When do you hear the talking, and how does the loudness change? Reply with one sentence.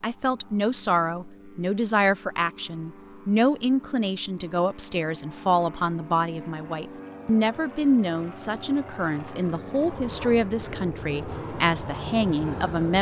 The talking can be heard from 0.0 to 12.9 s, at a steady volume.